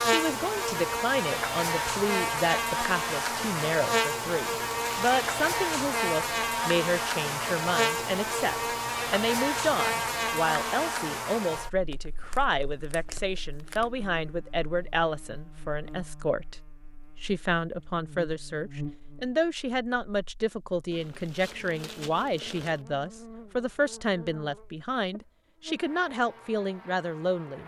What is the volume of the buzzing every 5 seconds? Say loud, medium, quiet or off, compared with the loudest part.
loud, loud, medium, quiet, quiet, quiet.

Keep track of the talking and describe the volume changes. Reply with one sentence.
The loudness of the talking stays about the same.